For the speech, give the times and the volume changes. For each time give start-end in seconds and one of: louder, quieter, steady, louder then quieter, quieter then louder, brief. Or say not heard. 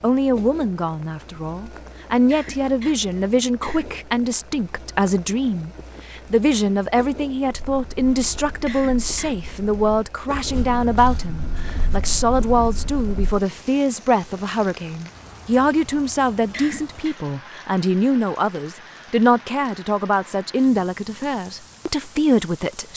0.0-22.9 steady.